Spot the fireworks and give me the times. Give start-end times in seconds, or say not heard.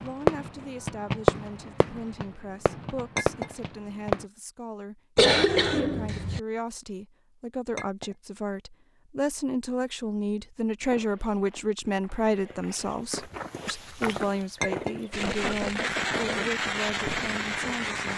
0.0-4.2, 15.1-18.1.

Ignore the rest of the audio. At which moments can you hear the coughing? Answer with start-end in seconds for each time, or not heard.
5.2-6.4, 15.2-16.6.